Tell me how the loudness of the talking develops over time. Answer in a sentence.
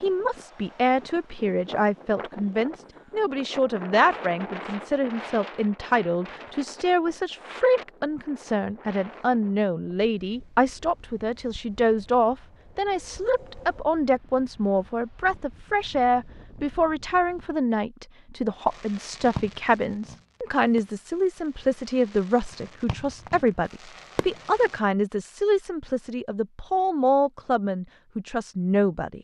The volume of the talking stays about the same.